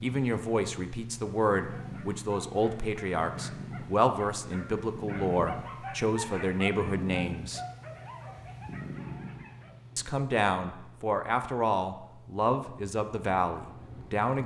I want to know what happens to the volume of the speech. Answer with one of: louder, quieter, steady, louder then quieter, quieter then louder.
steady.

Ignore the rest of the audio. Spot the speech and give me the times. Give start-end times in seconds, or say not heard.
0.0-7.6, 9.9-14.4.